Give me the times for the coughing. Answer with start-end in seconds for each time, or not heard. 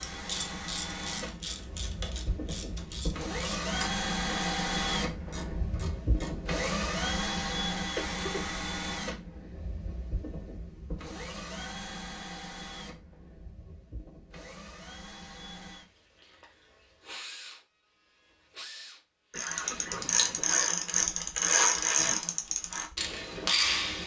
8.0-8.6, 19.3-20.1.